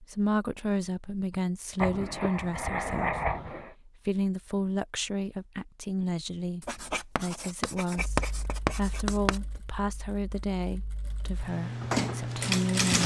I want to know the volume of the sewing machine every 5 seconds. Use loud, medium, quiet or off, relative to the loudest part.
off, quiet, loud.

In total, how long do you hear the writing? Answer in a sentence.
The writing can be heard for 5 seconds in total.